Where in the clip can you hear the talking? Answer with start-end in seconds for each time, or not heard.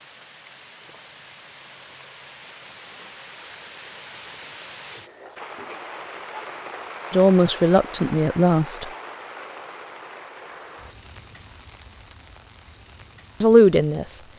7.1-8.9, 13.4-14.2.